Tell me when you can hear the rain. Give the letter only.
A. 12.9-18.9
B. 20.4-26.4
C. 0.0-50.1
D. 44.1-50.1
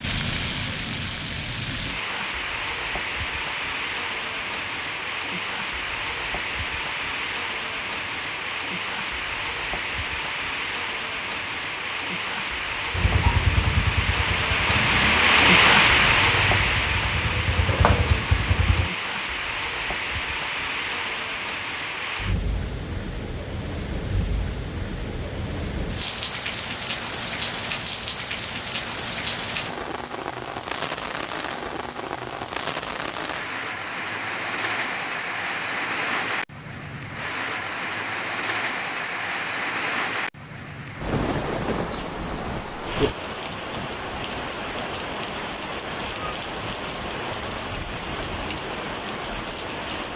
C.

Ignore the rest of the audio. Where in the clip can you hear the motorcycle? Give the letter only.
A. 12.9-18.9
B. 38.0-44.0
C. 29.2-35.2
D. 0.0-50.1
A.